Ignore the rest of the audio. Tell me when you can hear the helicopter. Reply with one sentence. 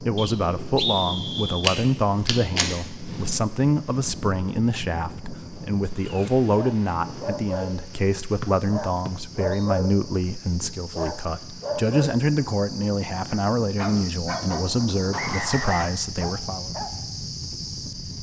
You can't hear the helicopter here.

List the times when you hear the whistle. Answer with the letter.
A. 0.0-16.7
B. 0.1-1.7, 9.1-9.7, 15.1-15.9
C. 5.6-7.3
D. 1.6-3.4
B.